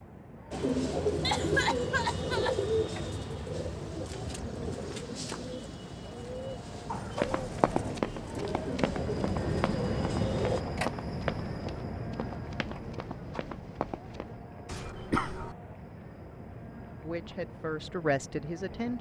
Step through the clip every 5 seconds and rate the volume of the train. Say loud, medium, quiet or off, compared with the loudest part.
medium, loud, loud, medium.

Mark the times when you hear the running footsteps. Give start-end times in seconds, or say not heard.
7.2-14.3.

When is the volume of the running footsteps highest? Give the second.
8 s.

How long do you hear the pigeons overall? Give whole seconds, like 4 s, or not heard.
10 s.